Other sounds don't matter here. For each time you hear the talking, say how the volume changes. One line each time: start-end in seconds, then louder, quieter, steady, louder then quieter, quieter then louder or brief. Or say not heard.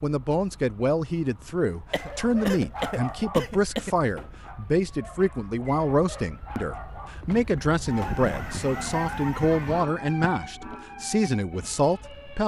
0.0-12.4 steady.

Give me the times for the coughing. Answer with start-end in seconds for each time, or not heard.
1.9-4.0, 9.7-10.1.